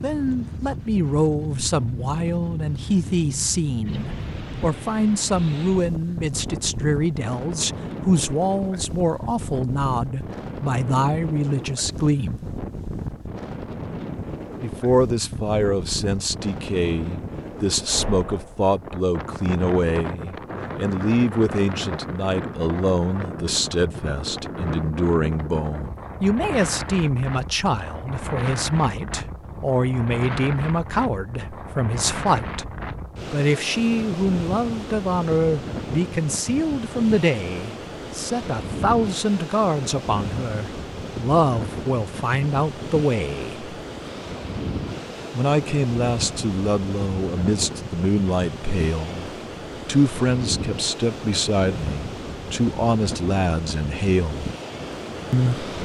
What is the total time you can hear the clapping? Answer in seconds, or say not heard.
not heard.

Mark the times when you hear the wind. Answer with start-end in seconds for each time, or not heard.
0.0-55.7.